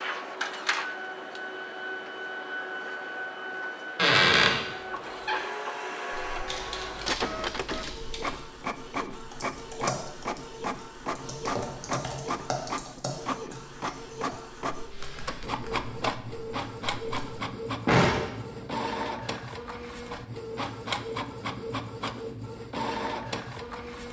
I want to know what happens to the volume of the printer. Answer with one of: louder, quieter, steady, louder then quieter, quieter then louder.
steady.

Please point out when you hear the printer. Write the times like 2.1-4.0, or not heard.
0.0-24.0.